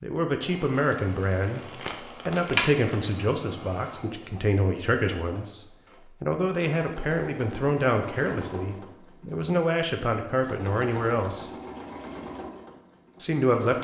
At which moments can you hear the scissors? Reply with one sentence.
The scissors can't be heard in this clip.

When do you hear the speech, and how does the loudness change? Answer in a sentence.
You can hear the speech from 0.0 to 11.5 s, at a steady volume; and briefly from 13.2 to 13.7 s.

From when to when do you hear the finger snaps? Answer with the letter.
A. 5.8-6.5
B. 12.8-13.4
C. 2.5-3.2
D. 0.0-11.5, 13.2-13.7
C.